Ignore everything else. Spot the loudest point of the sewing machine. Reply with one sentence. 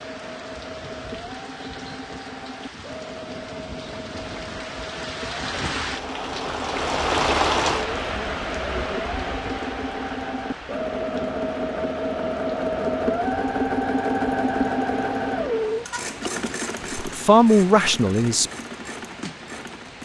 The volume of the sewing machine peaks at 14 seconds.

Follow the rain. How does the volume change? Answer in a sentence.
The volume of the rain goes up, then down.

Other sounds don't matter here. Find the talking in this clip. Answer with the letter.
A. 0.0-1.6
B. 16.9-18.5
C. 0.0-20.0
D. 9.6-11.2
B.